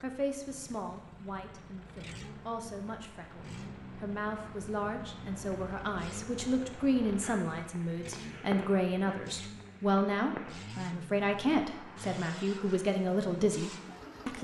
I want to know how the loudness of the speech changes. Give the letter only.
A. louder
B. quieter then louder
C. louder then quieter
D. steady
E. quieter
A.